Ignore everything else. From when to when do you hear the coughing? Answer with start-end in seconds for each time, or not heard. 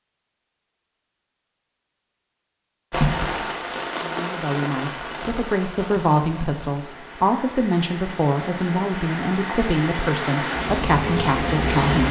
not heard.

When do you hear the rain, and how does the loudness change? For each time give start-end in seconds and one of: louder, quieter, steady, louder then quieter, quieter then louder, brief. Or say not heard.
2.9-12.0 quieter then louder.